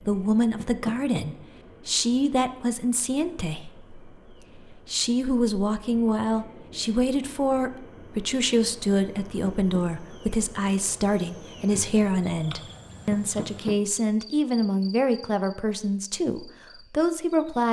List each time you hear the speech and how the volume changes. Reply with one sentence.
You can hear the speech from 0.1 to 17.6 s, at a steady volume.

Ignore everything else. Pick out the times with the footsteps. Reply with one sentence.
The footsteps can't be heard in this clip.